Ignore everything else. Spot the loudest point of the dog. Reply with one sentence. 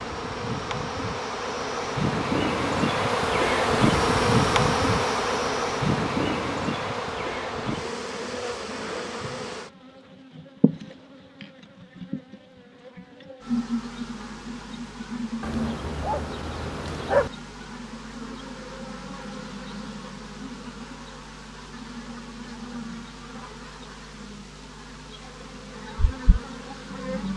The loudest moment of the dog is at 17 seconds.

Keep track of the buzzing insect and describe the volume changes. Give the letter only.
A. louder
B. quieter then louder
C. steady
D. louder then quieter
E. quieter
E.